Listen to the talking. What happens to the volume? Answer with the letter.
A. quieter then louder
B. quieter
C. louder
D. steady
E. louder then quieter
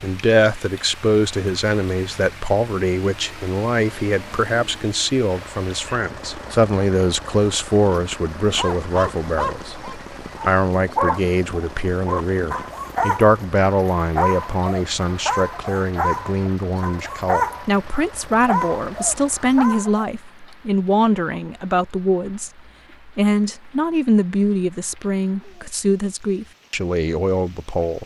D.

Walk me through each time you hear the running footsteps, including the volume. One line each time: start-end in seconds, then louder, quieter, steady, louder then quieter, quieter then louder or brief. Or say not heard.
not heard.